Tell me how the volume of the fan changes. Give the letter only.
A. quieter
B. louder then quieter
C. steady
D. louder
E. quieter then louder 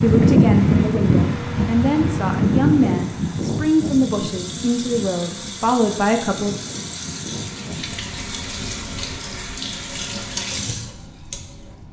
A.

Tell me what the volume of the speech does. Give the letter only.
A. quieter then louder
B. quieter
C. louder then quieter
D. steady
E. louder
D.